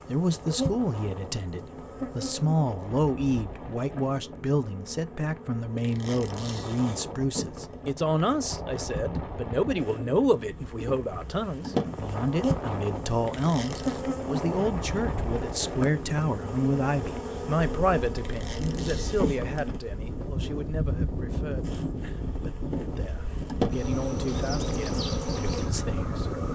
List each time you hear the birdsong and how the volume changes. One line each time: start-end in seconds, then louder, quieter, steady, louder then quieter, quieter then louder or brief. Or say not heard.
not heard.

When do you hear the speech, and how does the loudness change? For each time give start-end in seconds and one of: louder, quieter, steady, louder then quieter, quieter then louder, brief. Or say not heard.
0.1-26.4 quieter.